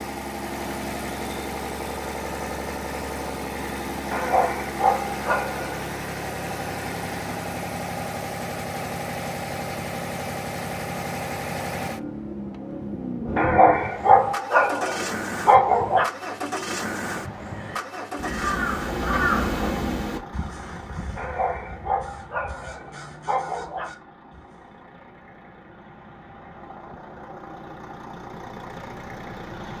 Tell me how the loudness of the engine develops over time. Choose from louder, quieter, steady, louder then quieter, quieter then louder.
quieter.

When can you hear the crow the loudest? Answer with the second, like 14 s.
19 s.